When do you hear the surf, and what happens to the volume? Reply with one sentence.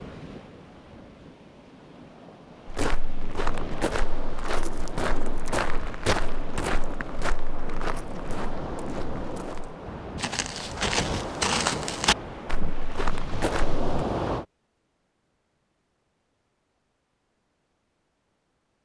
The surf can be heard from 0.0 to 14.4 s, getting louder.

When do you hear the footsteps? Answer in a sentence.
The footsteps can be heard from 2.6 to 13.8 s.